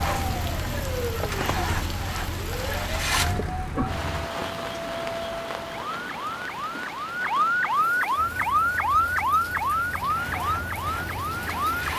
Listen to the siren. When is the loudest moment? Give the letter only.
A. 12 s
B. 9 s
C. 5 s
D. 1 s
B.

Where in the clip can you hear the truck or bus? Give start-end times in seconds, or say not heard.
0.0-4.3, 8.2-11.9.